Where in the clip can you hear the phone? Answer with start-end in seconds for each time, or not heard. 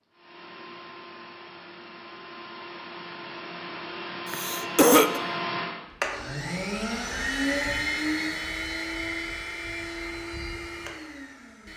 not heard.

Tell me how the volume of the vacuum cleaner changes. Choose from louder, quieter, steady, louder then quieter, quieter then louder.
louder then quieter.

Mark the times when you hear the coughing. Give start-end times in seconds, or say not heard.
4.3-5.2.